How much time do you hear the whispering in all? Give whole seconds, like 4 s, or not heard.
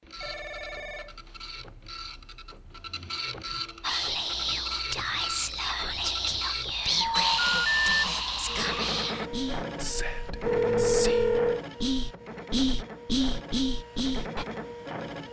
11 s.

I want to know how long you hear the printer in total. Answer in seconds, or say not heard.
15 s.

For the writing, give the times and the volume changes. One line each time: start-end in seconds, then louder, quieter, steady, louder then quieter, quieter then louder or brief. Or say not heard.
not heard.